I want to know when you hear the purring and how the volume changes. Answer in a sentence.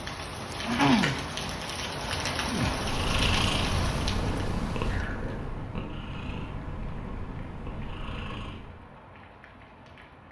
The purring can be heard from 2.6 to 8.8 s, getting quieter.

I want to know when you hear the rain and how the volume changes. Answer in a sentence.
You can hear the rain from 0.0 to 10.2 s, getting quieter.